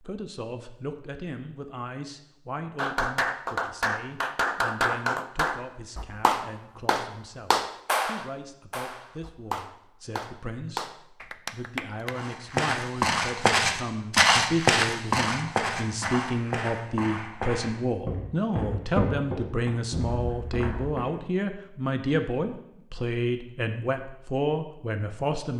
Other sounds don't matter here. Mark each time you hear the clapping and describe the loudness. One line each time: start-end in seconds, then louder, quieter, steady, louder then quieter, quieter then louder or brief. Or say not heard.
2.8-12.2 quieter.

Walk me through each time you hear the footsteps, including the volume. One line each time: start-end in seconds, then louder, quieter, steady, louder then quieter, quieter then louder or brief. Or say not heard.
12.1-21.2 quieter.